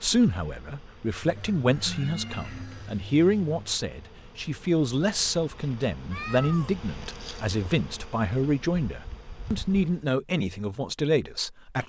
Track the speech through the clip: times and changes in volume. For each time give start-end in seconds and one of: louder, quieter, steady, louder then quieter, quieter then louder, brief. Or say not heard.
0.0-11.8 steady.